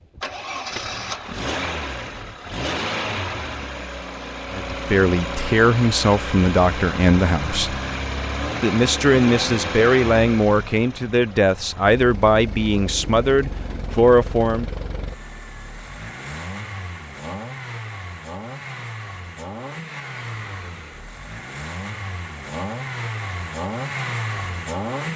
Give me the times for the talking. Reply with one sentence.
The talking can be heard from 4.5 to 7.8 s and from 8.6 to 14.7 s.